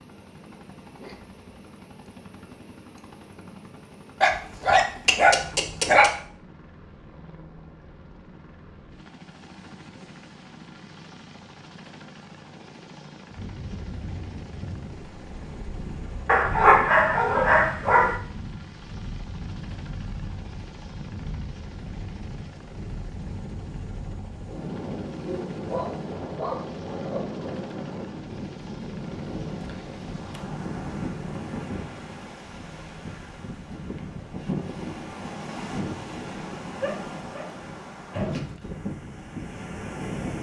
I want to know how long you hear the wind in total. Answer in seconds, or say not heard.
27 s.